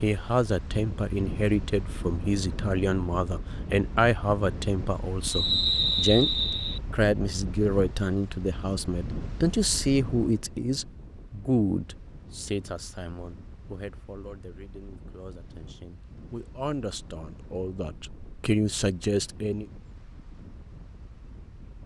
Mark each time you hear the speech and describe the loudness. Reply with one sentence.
You can hear the speech from 0.0 to 19.6 s, getting quieter then louder.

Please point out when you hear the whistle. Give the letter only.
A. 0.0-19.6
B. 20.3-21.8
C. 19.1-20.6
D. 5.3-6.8
D.